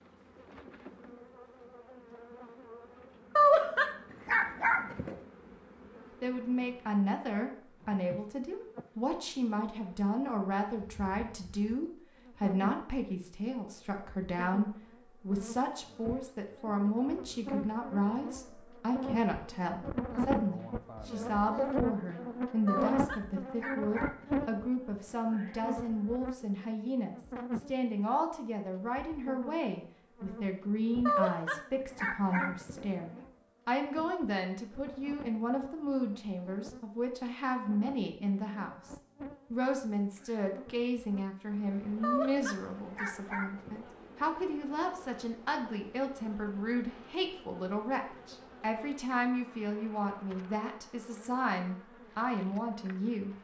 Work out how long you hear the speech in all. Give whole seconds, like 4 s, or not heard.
47 s.